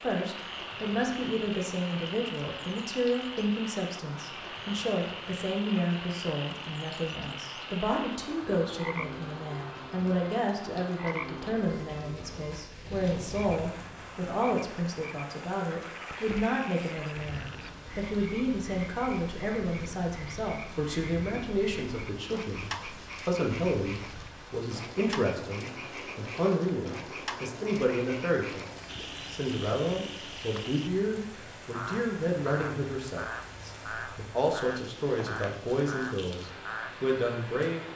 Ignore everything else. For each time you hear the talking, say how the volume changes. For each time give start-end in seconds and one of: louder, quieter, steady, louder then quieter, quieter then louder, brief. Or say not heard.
0.0-37.9 steady.